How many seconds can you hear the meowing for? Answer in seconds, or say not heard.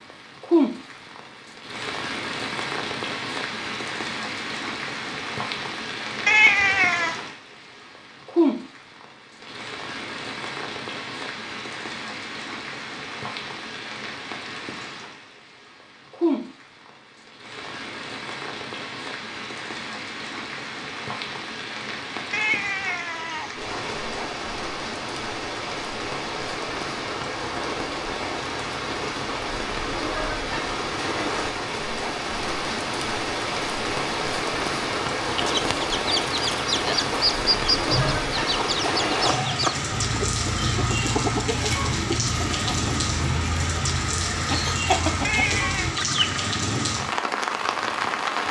3 s.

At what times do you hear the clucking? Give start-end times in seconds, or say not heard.
35.3-46.4.